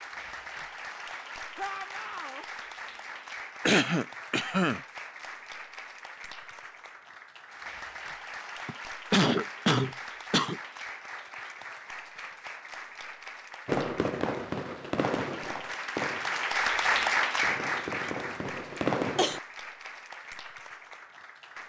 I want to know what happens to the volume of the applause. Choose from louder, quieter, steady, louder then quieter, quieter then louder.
louder.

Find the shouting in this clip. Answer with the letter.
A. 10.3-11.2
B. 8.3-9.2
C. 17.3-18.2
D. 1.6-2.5
D.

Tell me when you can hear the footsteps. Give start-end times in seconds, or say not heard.
not heard.